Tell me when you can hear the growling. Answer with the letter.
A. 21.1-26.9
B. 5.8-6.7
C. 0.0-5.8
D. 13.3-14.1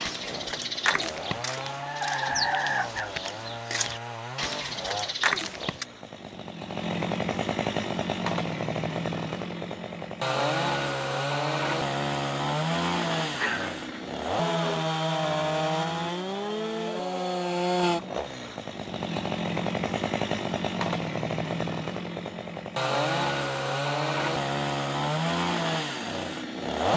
D.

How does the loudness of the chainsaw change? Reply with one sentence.
The volume of the chainsaw goes up.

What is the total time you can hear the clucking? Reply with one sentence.
The clucking can be heard for 6 seconds in total.